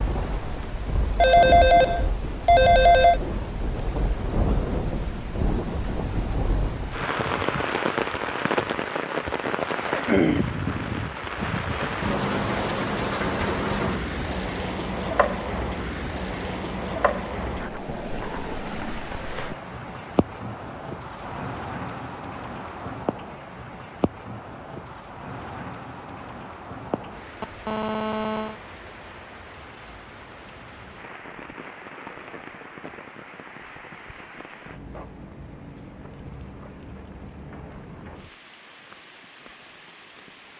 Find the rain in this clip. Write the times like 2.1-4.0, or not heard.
0.0-40.5.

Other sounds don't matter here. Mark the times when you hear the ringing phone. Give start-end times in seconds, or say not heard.
1.1-3.2, 27.4-28.6.